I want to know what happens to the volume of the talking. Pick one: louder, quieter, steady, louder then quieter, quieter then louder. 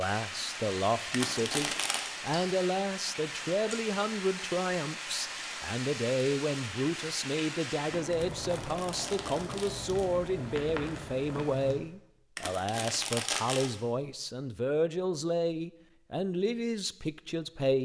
steady.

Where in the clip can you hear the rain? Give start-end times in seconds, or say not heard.
0.0-11.8.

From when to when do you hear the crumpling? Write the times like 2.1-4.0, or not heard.
1.1-2.1, 8.3-10.2, 12.3-13.7.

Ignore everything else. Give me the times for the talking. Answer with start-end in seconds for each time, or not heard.
0.0-17.8.